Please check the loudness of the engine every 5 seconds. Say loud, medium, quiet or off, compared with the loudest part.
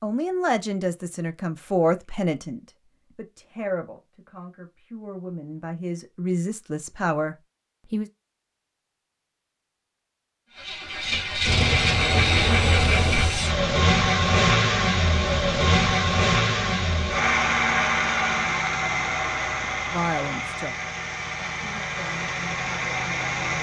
off, off, loud, loud, medium.